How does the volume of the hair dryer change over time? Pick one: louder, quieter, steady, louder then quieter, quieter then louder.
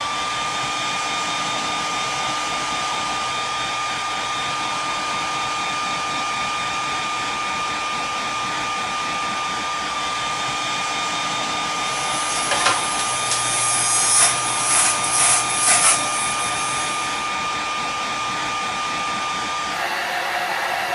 steady.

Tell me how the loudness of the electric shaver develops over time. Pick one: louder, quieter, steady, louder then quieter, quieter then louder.
steady.